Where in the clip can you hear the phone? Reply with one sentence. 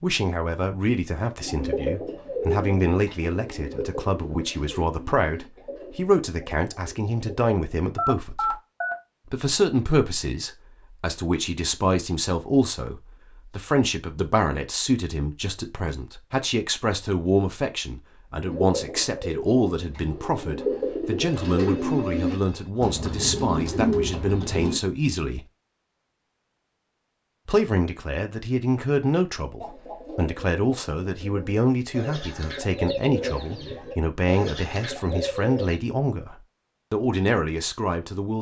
The phone can be heard from 8.0 to 8.9 s and from 21.2 to 22.7 s.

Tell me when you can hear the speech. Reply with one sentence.
The speech can be heard from 0.0 to 8.6 s, from 9.3 to 25.4 s and from 27.4 to 38.3 s.